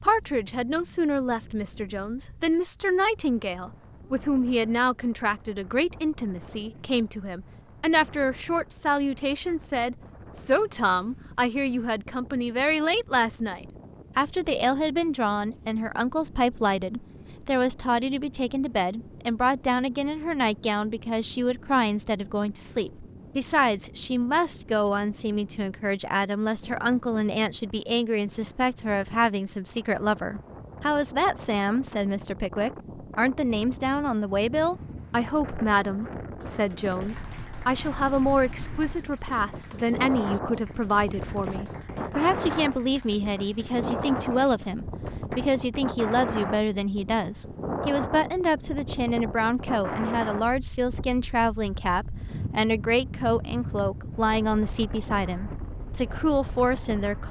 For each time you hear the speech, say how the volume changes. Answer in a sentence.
The speech can be heard from 0.0 to 57.2 s, at a steady volume.